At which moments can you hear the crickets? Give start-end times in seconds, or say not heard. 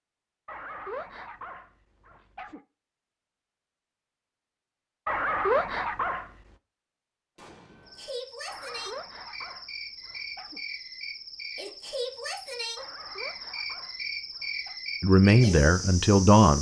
7.8-16.5.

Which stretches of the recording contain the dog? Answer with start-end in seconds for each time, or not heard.
0.5-2.6, 5.0-6.3, 8.4-10.6, 12.8-14.8.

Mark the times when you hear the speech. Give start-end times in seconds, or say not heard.
15.0-16.5.